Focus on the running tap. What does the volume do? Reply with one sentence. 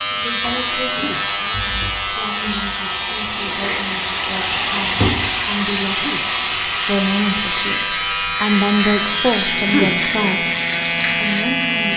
The volume of the running tap goes up, then down.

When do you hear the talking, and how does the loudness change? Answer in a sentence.
You can hear the talking from 0.1 to 10.4 s, getting louder; and briefly from 11.2 to 11.9 s.